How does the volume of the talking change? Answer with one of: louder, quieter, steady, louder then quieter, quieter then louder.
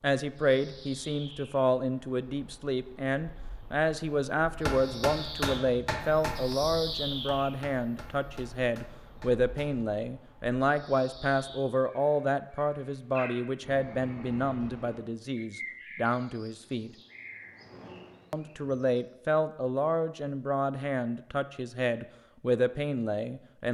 steady.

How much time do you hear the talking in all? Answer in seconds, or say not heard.
22 s.